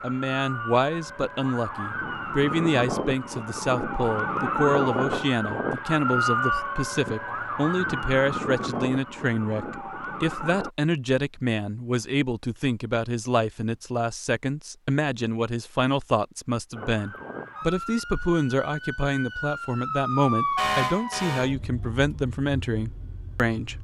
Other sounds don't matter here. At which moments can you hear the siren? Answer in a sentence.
The siren can be heard from 0.0 to 10.7 s and from 16.8 to 23.8 s.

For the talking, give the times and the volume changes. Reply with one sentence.
The talking can be heard from 0.0 to 23.8 s, at a steady volume.